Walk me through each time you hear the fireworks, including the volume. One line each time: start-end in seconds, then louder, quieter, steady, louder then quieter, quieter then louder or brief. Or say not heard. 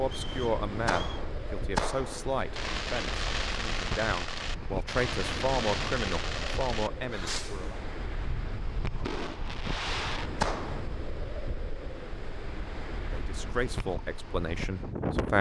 0.8-11.3 quieter then louder.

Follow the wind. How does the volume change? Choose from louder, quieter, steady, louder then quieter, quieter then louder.
steady.